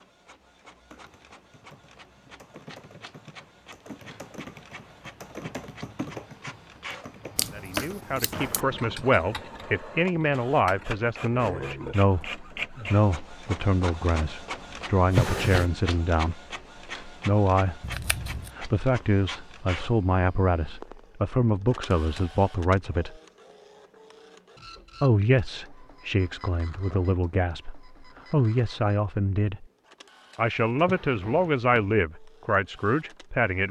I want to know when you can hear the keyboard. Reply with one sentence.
You can hear the keyboard from 0.9 to 12.2 s.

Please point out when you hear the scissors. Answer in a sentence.
You can hear the scissors from 7.3 to 8.6 s and from 17.8 to 18.5 s.